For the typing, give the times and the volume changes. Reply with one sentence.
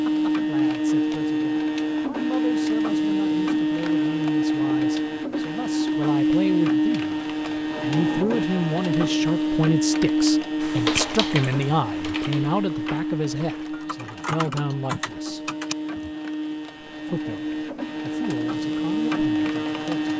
You can hear the typing from 10.6 to 16.1 s, getting quieter then louder.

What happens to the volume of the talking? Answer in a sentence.
The loudness of the talking goes up, then down.